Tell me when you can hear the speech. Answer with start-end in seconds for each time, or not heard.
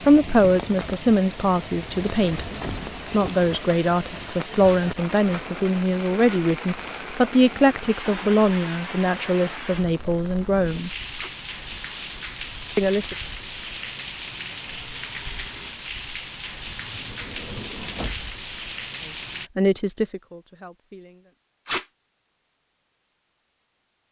0.1-10.9, 12.8-13.2, 19.1-21.3.